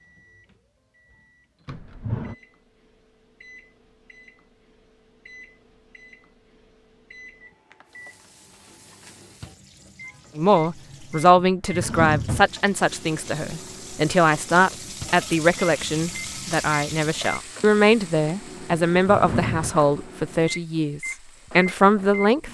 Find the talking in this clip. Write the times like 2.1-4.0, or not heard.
10.3-22.5.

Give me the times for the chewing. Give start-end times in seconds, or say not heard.
not heard.